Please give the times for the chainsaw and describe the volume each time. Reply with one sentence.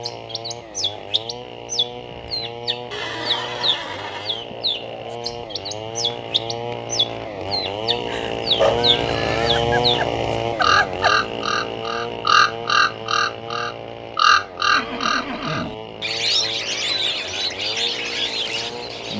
You can hear the chainsaw from 0.0 to 19.1 s, getting louder then quieter.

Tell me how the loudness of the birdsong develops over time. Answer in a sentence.
The volume of the birdsong goes up, then down.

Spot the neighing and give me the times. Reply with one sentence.
You can hear the neighing from 2.9 to 4.5 s, from 8.8 to 9.7 s and from 14.7 to 15.8 s.